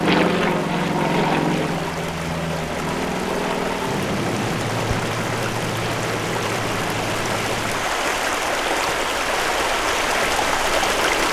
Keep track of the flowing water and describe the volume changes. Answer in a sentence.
The loudness of the flowing water goes up.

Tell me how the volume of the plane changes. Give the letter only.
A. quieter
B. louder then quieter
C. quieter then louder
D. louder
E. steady
A.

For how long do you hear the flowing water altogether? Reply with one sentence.
The flowing water can be heard for 11 seconds in total.